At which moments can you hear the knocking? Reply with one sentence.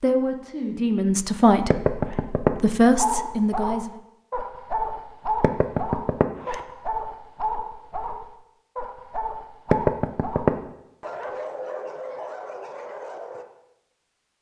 The knocking can be heard from 1.7 to 2.5 s, from 5.4 to 6.2 s and from 9.7 to 10.5 s.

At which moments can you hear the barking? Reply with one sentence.
The barking can be heard from 2.9 to 13.4 s.